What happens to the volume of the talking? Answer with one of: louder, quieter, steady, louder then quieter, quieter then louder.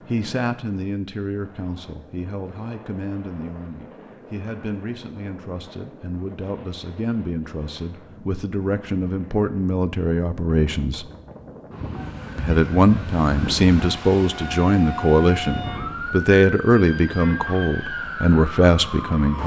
louder.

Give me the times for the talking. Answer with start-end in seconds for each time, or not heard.
0.1-11.1, 12.3-19.4.